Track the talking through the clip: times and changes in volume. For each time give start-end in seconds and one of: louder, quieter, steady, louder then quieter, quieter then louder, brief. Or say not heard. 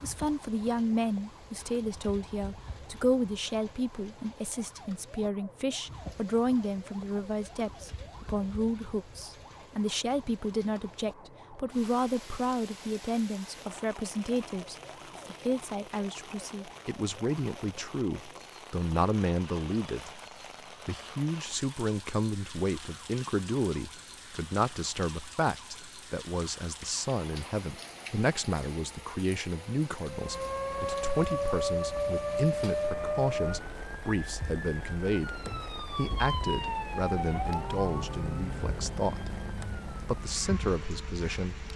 0.0-20.2 steady
20.9-41.6 steady.